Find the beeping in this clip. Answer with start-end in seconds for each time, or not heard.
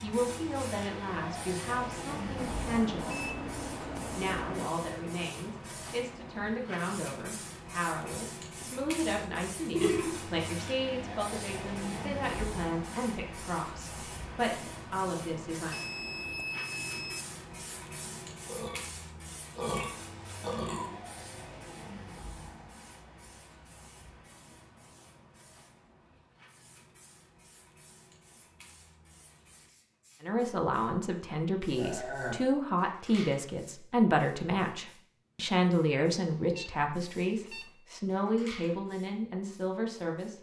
2.4-4.7, 15.7-17.2, 36.4-37.8.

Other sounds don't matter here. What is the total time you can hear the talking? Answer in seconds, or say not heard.
25 s.